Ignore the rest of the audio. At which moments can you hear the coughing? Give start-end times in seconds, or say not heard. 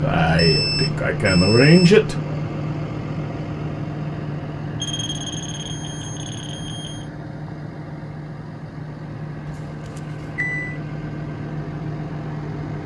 not heard.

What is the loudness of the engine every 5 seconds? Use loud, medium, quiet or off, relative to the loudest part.
loud, medium, loud.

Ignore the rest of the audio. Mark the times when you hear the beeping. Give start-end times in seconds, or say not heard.
0.3-1.8, 4.8-7.0, 9.4-10.8.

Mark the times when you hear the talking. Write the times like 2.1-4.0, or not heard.
0.0-2.1.